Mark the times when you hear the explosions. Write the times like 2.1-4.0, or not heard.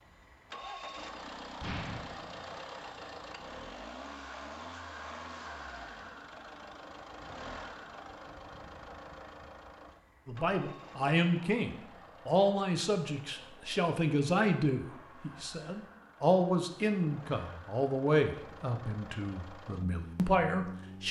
1.6-2.6.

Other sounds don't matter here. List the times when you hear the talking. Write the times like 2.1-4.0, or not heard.
10.2-21.0.